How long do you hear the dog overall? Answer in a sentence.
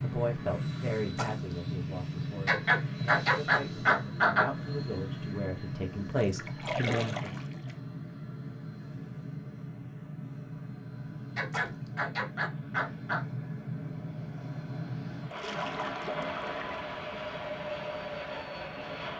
The dog can be heard for 4 seconds in total.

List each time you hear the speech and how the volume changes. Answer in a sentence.
The speech can be heard from 0.0 to 7.4 s, getting quieter then louder.